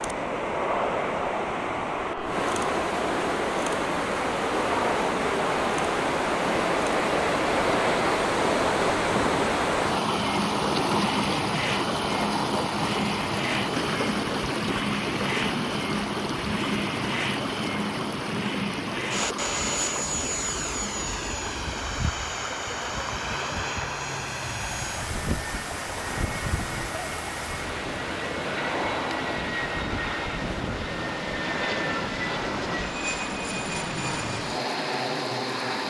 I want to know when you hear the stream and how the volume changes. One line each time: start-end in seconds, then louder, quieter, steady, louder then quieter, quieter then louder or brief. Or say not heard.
0.0-35.8 quieter.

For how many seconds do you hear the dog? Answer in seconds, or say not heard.
not heard.